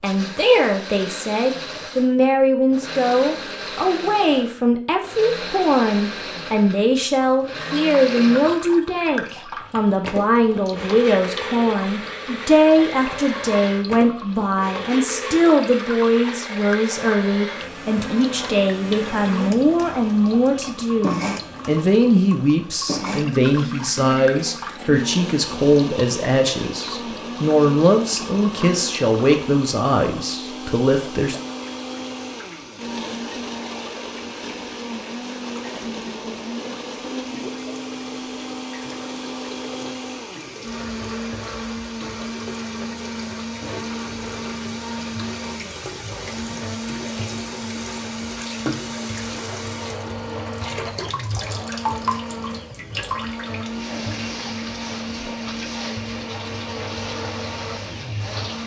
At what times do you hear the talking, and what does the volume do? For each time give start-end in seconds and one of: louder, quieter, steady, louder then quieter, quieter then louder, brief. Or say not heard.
0.0-31.4 steady.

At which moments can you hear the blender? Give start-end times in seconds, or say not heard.
0.0-58.6.